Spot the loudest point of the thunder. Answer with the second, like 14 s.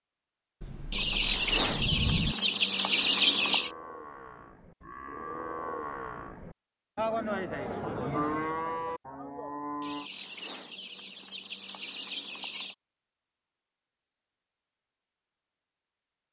2 s.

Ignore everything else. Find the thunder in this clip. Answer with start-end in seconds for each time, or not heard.
0.6-2.4.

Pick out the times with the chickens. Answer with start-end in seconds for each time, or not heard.
0.9-3.7, 9.8-12.8.